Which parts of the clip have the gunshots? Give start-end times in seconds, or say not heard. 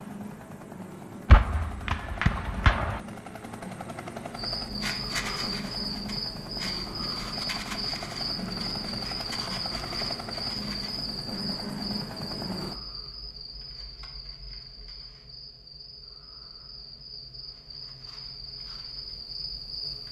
1.2-3.0.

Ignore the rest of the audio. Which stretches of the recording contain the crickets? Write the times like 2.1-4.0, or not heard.
4.3-20.0.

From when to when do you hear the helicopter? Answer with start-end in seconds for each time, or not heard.
0.0-12.8.